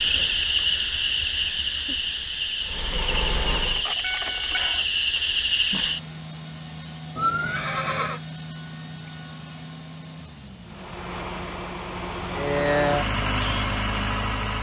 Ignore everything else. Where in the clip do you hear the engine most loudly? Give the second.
13 s.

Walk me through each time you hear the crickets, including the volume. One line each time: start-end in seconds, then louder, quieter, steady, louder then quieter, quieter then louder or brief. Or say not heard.
0.0-14.5 steady.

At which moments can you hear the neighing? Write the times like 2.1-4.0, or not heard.
7.2-8.2.